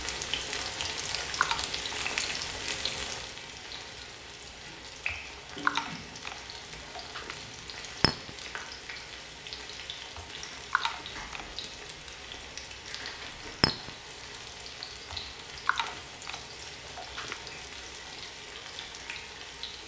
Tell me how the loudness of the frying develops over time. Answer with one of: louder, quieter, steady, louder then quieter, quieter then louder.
quieter.